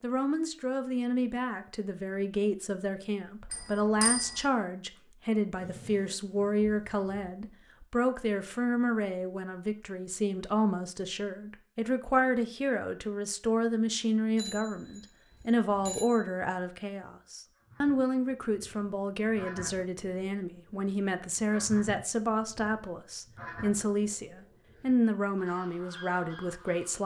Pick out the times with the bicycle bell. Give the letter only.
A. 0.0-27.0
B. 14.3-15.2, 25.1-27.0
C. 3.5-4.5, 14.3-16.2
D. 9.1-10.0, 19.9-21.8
C.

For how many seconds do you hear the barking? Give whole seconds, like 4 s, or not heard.
not heard.